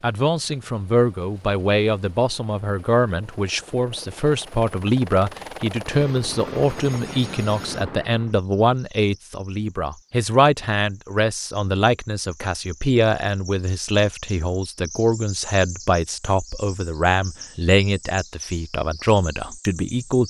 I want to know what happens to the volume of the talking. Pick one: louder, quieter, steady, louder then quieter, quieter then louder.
steady.